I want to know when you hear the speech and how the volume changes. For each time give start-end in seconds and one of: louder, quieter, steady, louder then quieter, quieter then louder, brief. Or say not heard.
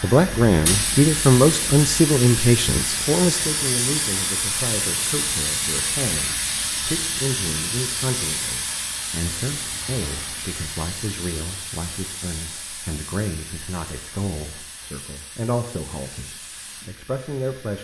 0.0-17.7 quieter.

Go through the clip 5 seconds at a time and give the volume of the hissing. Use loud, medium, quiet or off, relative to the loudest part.
loud, loud, medium, quiet.